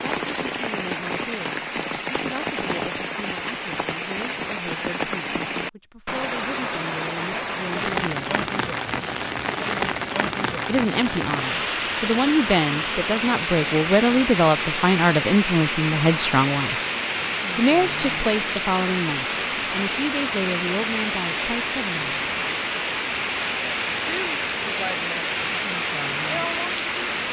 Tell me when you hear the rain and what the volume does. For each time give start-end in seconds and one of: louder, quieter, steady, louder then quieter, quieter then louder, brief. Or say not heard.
0.0-27.2 steady.